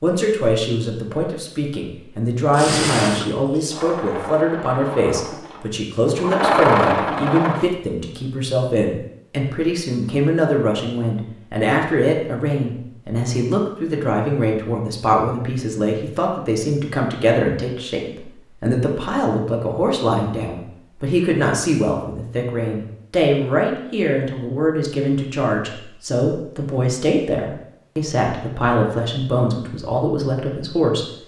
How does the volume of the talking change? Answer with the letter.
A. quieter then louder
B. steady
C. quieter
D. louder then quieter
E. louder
B.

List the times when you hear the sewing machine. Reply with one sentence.
The sewing machine can be heard from 2.5 to 7.7 s.